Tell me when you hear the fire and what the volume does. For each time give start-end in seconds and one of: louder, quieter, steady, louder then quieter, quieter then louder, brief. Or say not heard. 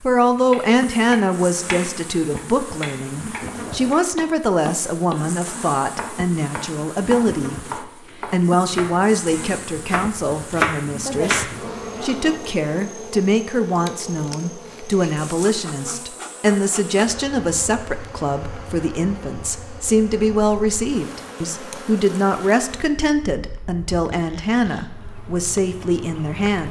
not heard.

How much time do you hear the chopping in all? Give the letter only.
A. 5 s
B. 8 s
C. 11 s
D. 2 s
C.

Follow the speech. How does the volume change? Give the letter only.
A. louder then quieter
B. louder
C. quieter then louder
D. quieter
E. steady
E.